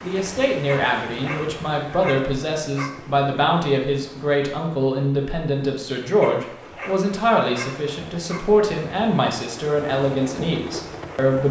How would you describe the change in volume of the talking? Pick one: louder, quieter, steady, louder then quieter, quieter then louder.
steady.